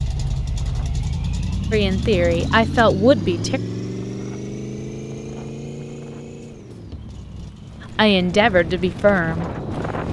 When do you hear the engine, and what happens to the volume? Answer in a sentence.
You can hear the engine from 0.0 to 10.0 s, getting quieter.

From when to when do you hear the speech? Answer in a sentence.
The speech can be heard from 1.7 to 3.6 s and from 7.8 to 9.5 s.